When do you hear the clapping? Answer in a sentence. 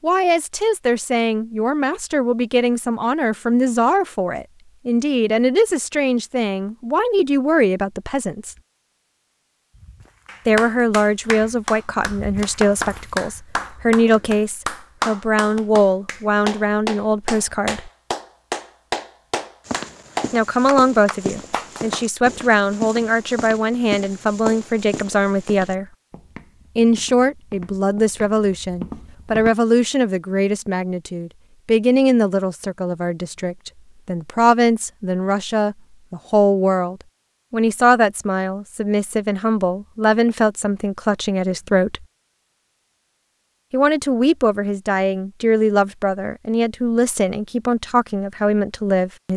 The clapping can be heard from 10.2 to 22.1 s.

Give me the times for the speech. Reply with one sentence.
You can hear the speech from 0.0 to 8.6 s, from 10.4 to 17.9 s, from 20.3 to 25.9 s, from 26.8 to 42.0 s and from 43.7 to 49.3 s.